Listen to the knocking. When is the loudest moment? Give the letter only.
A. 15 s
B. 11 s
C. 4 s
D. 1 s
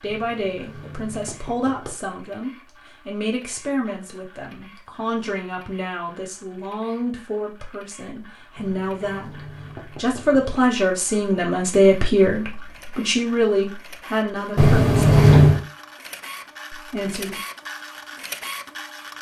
A.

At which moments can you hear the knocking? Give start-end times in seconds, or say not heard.
0.1-1.9, 8.6-10.6, 14.6-15.6.